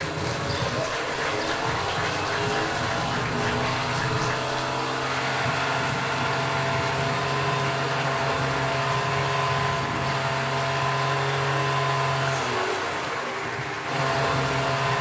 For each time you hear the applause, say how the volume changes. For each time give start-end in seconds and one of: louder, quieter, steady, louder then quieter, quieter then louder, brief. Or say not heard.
0.0-14.9 steady.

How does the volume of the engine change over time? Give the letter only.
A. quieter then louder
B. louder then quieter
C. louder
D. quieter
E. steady
E.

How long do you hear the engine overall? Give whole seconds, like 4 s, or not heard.
15 s.